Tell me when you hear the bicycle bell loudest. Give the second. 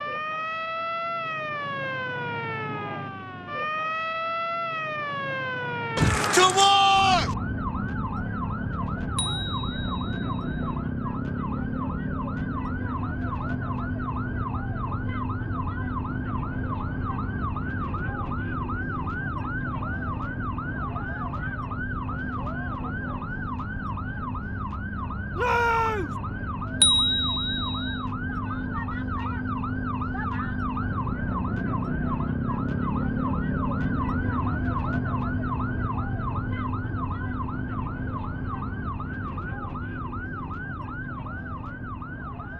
27 s.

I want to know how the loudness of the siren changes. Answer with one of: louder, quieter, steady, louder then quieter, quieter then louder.
steady.